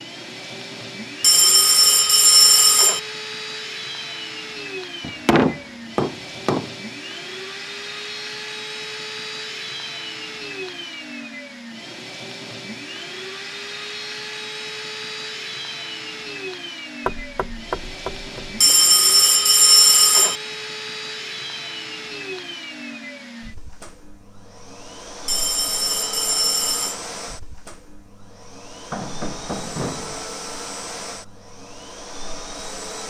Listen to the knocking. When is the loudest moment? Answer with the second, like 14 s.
5 s.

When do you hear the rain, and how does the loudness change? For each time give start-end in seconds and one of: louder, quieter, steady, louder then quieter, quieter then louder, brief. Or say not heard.
not heard.